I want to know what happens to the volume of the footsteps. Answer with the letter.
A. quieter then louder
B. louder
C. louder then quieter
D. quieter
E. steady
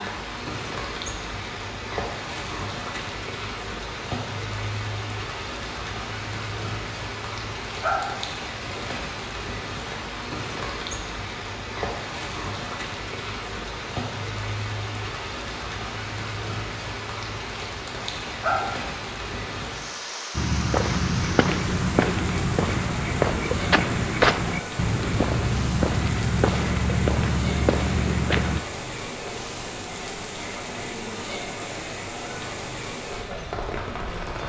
E.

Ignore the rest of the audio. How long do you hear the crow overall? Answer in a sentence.
The crow can't be heard in this clip.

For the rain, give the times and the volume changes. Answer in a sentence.
The rain can be heard from 0.0 to 34.4 s, at a steady volume.